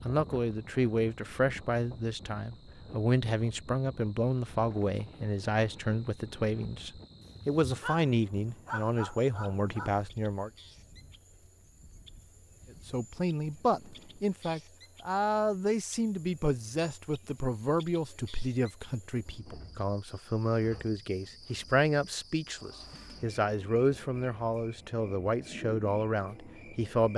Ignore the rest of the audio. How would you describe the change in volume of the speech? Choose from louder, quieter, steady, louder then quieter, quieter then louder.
steady.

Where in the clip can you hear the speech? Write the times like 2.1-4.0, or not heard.
0.0-10.5, 12.8-27.1.